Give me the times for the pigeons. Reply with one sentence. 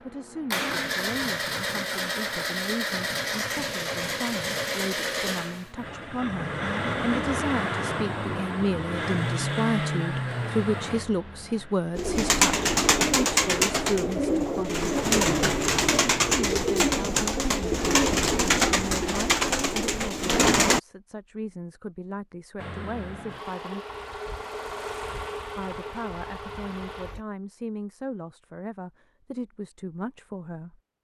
The pigeons can be heard from 11.9 to 20.8 s.